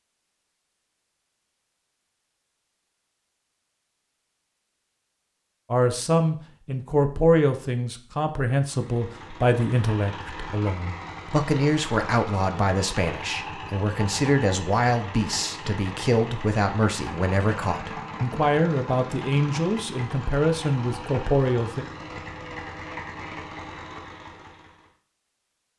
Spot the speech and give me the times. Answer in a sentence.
You can hear the speech from 5.7 to 21.9 s.